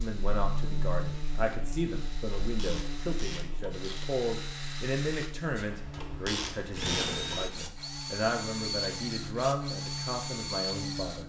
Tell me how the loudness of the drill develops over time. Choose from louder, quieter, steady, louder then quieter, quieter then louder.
louder.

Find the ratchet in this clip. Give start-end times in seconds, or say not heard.
2.5-4.1, 5.9-7.5.